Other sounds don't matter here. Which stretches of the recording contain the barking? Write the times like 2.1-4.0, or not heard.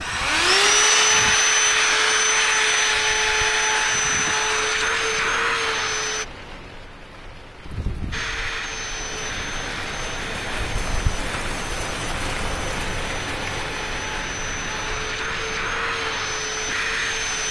not heard.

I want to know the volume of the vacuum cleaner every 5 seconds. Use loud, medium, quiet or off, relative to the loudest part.
loud, medium, quiet, medium.